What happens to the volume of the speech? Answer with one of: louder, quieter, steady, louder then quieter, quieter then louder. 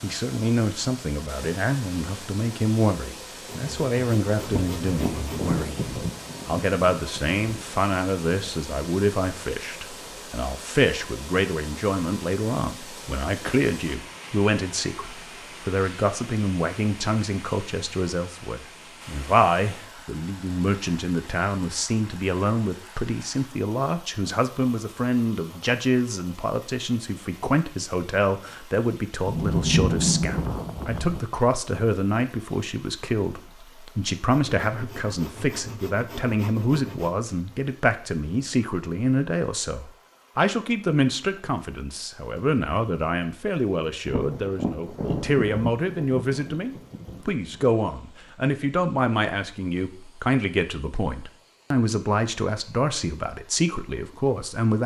steady.